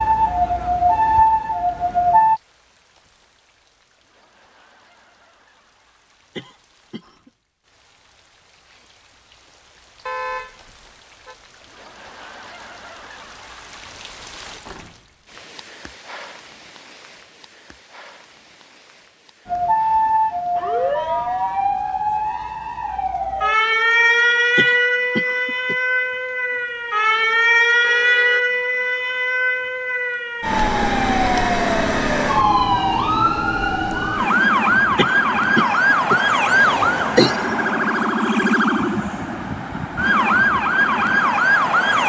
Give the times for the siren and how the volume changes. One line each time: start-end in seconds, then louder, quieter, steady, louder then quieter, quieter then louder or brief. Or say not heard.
0.0-2.4 brief
19.4-42.0 steady.